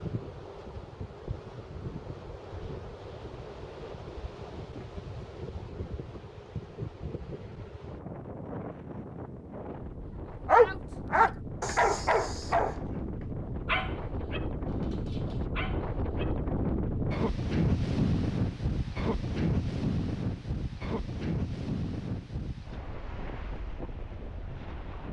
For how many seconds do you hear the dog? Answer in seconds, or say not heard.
5 s.